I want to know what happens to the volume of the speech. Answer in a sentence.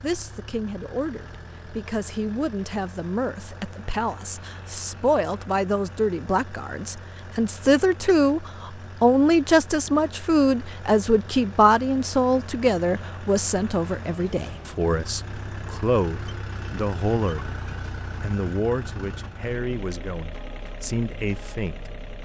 The loudness of the speech goes up, then down.